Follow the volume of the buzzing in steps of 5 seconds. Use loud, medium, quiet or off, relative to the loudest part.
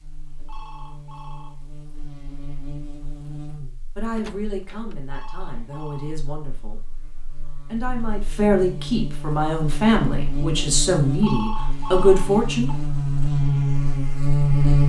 quiet, quiet, loud.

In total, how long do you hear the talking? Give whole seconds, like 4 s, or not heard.
8 s.